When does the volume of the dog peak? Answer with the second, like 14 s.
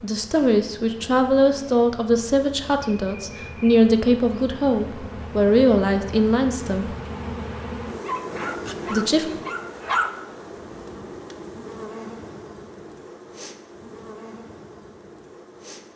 10 s.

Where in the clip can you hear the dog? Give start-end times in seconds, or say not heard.
8.0-10.1.